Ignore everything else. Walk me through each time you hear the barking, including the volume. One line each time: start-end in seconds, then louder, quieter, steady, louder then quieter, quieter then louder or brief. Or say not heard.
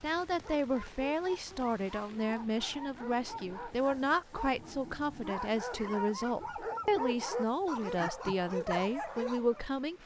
0.3-9.7 louder.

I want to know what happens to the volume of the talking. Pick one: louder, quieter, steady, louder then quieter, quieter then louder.
steady.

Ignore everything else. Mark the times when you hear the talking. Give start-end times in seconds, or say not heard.
0.0-10.0.